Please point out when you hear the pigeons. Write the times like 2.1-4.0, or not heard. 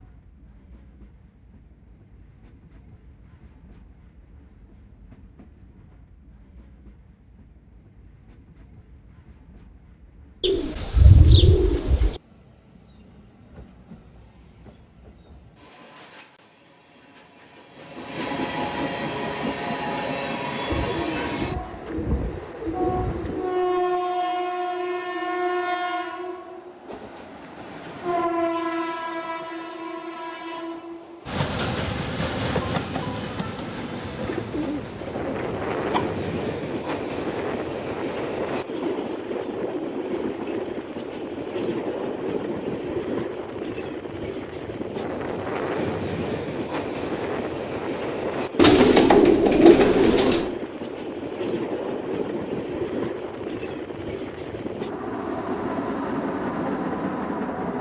10.4-12.2, 20.7-23.6, 34.1-36.1, 48.5-50.5.